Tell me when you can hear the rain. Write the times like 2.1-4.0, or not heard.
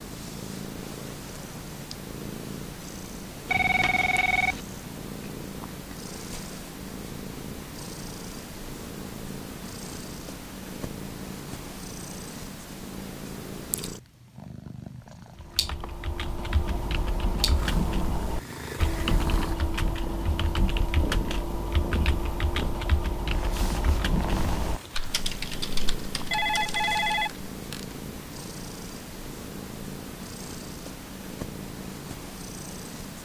not heard.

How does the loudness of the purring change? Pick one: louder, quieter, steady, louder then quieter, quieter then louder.
steady.